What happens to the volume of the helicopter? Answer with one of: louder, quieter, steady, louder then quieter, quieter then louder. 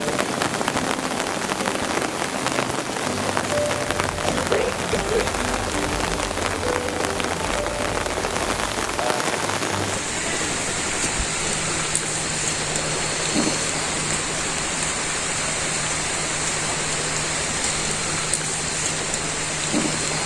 steady.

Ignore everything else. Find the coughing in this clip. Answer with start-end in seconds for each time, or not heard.
4.0-5.3.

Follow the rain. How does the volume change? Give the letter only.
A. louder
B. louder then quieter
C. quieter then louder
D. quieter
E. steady
E.